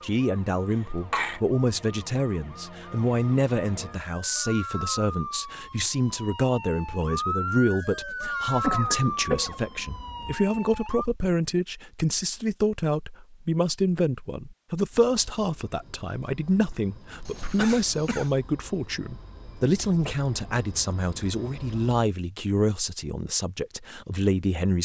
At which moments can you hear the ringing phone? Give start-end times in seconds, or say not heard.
not heard.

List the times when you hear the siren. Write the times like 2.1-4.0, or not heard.
0.0-11.1.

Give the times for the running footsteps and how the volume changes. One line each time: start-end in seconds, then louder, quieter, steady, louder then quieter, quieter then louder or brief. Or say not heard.
not heard.